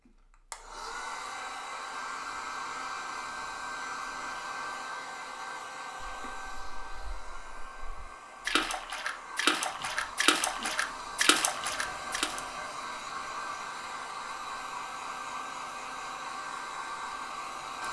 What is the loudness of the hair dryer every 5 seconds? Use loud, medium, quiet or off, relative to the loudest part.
loud, medium, loud, loud.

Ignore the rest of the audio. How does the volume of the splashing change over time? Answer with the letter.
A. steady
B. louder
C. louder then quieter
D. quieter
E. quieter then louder
B.